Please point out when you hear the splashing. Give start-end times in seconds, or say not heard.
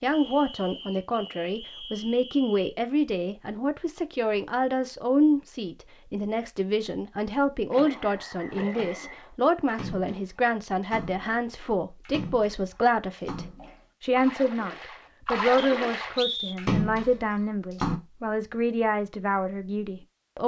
7.7-18.0.